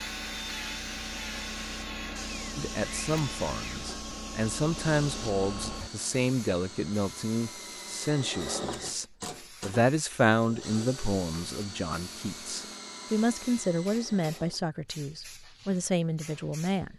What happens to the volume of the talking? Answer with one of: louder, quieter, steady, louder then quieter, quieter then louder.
steady.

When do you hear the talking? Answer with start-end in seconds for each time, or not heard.
2.5-16.9.